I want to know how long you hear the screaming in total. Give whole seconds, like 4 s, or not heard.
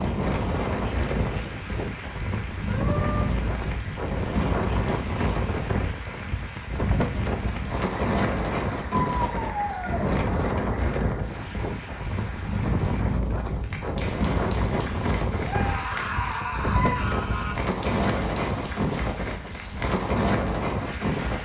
4 s.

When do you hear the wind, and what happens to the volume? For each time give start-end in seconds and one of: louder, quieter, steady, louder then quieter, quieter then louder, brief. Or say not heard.
0.0-21.4 steady.